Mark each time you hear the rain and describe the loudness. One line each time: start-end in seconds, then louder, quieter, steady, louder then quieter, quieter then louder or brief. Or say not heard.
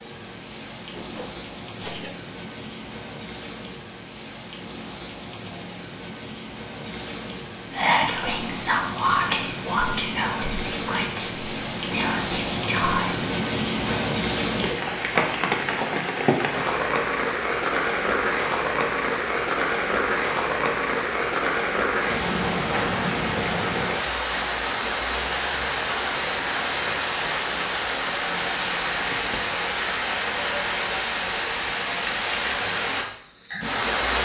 0.0-34.2 louder.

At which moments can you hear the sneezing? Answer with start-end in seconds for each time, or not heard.
0.9-2.2.